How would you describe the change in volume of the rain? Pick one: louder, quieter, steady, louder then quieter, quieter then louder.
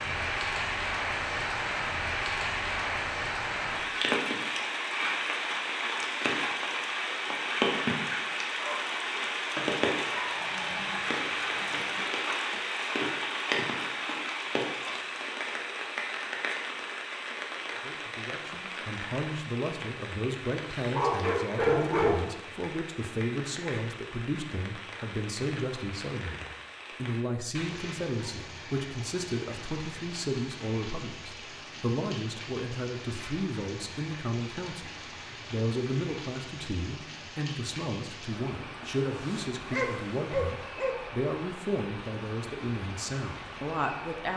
quieter.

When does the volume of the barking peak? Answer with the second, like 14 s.
22 s.